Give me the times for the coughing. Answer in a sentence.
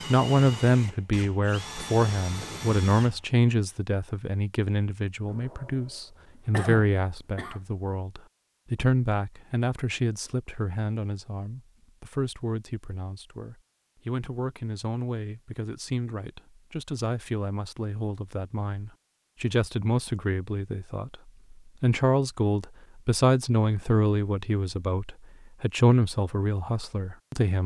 The coughing can be heard from 5.3 to 7.6 s.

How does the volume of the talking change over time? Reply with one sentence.
The loudness of the talking goes down, then up.